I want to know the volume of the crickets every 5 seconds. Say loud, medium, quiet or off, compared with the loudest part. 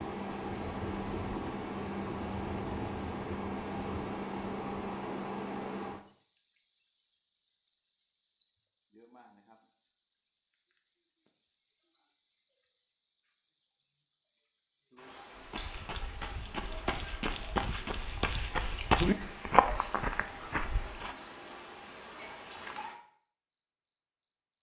loud, medium, quiet, medium, medium.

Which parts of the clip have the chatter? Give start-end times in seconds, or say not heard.
not heard.